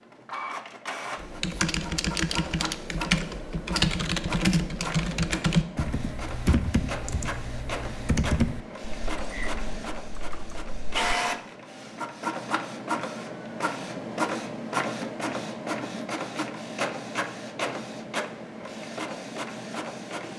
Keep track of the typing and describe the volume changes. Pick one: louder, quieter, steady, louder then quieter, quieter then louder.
quieter.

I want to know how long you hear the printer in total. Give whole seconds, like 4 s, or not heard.
20 s.